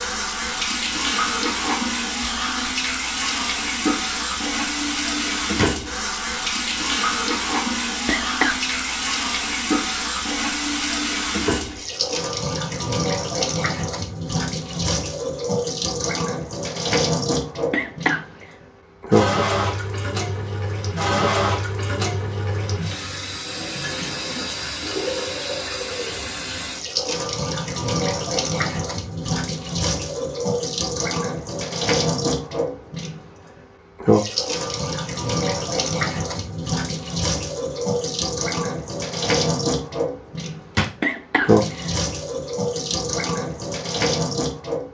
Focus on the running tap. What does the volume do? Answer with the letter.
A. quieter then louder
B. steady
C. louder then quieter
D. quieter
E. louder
B.